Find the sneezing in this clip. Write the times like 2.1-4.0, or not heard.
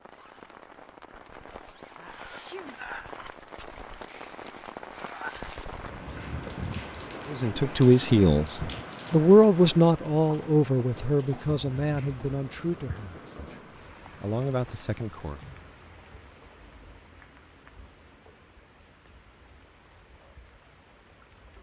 1.9-2.8.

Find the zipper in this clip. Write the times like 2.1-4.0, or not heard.
not heard.